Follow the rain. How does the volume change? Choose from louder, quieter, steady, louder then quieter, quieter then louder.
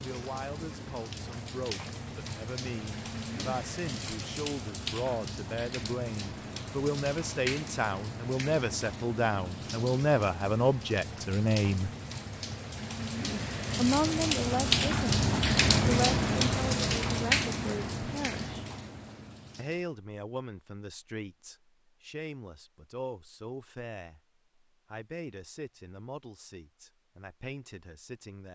louder.